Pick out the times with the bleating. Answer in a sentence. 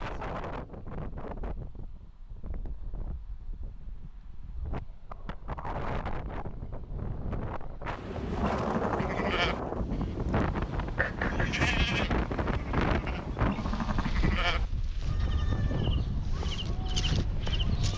The bleating can be heard from 8.2 to 17.9 s.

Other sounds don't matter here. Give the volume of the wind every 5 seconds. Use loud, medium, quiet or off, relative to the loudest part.
medium, loud, loud, loud.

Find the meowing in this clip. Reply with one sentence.
The meowing can be heard from 10.9 to 11.7 s.